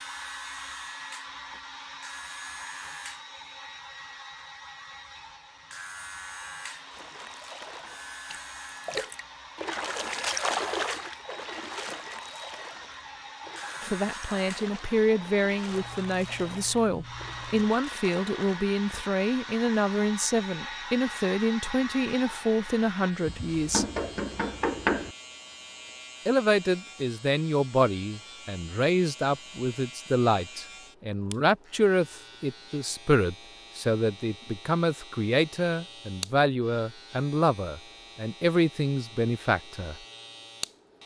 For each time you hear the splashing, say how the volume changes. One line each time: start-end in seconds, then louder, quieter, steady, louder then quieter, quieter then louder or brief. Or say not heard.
6.8-18.6 louder then quieter.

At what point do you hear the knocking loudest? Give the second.
25 s.